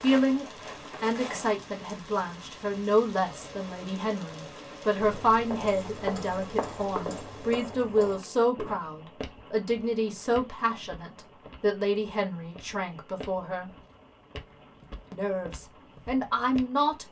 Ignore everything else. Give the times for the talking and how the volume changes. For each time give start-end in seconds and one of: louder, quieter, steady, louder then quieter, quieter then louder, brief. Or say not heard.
0.0-13.7 steady
15.1-17.0 brief.